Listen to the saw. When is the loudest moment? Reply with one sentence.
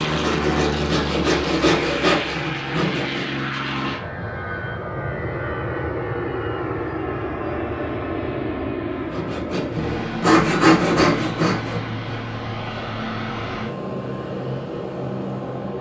The loudest moment of the saw is at 11 seconds.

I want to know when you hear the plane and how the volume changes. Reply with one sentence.
The plane can be heard from 0.0 to 15.7 s, at a steady volume.